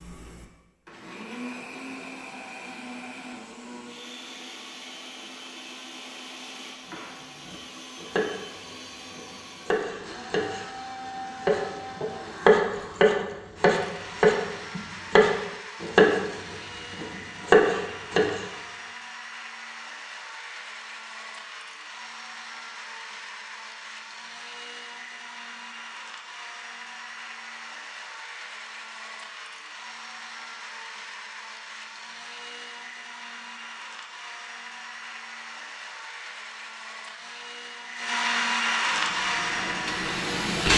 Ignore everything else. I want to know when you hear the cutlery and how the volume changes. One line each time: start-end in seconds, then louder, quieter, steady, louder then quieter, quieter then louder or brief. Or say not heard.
not heard.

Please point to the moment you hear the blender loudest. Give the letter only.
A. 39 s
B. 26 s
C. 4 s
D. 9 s
A.